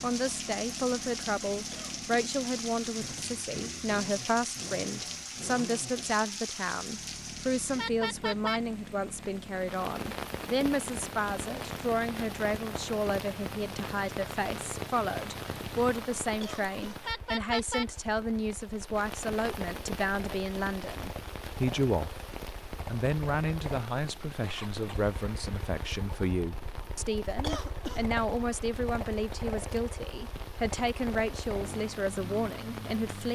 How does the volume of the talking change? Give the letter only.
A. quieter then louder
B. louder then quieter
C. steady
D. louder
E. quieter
C.